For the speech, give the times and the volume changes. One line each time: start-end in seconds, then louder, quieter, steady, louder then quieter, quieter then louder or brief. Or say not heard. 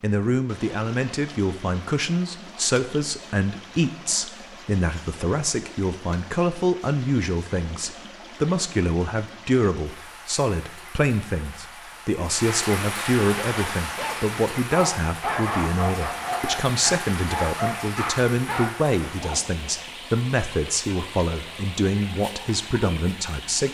0.0-23.6 steady.